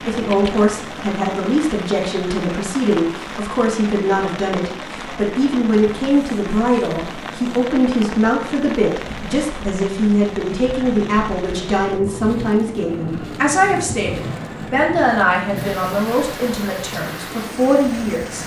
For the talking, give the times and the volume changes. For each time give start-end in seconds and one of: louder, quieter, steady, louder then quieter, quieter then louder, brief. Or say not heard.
0.0-18.4 steady.